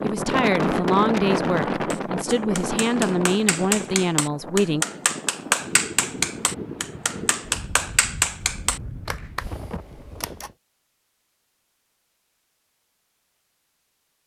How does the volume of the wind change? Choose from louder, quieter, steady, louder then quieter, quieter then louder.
quieter.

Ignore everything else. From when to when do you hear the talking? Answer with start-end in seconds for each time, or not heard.
0.0-4.8.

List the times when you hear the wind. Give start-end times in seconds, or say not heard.
0.0-10.6.